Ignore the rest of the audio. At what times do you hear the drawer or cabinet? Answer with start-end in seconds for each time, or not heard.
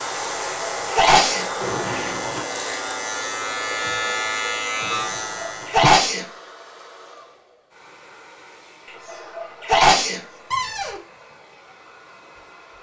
1.6-2.5, 4.8-6.0, 10.5-11.0.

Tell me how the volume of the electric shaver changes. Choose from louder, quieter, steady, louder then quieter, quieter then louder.
louder.